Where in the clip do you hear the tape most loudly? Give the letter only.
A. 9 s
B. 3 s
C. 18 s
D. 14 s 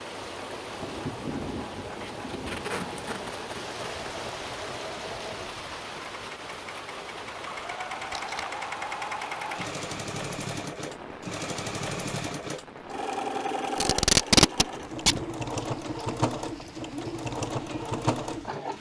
D.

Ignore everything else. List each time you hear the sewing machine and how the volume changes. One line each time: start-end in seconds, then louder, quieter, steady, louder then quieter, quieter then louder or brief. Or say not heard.
0.0-18.7 louder.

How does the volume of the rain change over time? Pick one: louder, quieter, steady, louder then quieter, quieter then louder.
quieter.